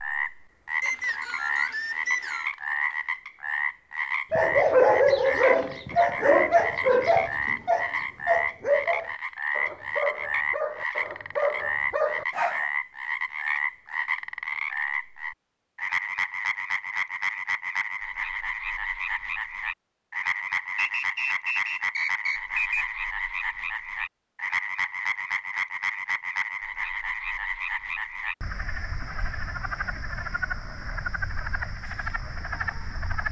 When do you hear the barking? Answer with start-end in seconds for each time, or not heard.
4.3-12.7.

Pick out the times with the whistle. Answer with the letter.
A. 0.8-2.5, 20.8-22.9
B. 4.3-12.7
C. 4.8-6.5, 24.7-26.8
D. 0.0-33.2
A.